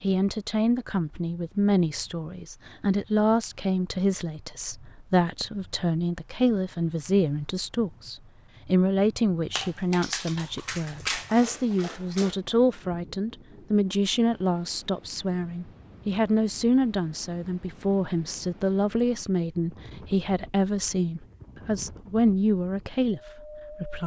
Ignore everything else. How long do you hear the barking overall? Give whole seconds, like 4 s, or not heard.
3 s.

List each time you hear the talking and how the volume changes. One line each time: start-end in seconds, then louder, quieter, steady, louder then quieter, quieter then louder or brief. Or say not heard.
0.0-24.0 steady.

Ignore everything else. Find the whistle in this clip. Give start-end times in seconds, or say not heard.
not heard.